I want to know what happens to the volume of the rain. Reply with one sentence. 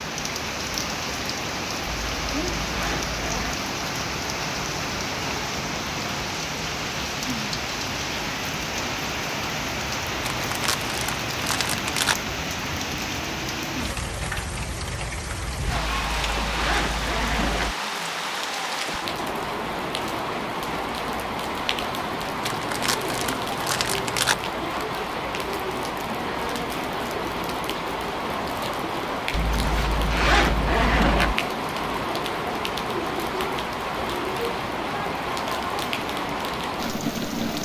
The volume of the rain stays about the same.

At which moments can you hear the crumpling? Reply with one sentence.
The crumpling can be heard from 10.3 to 12.2 s and from 22.4 to 24.4 s.